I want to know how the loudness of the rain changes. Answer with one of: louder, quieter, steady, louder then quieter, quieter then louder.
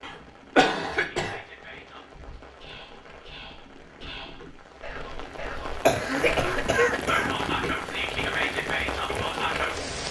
louder.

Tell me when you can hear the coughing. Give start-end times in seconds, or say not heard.
0.0-1.4, 5.8-7.3.